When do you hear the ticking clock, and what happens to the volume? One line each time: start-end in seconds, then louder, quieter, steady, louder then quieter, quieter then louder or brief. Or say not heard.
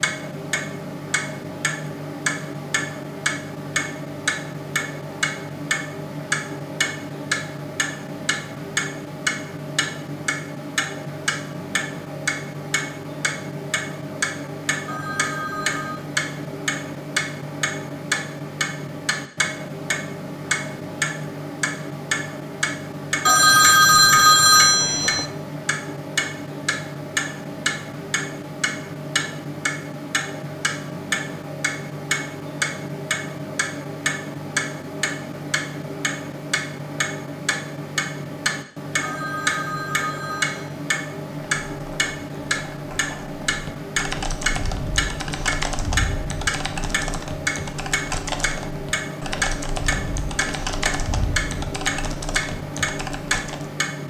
0.0-54.0 steady.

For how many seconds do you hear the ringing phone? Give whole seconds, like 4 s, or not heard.
5 s.